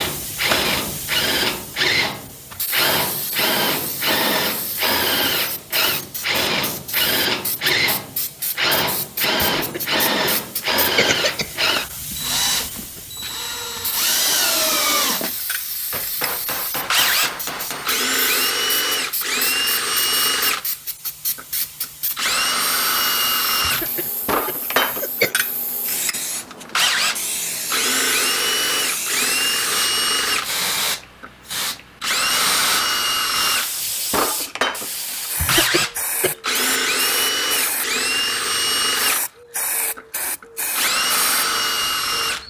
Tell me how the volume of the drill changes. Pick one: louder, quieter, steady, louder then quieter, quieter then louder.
steady.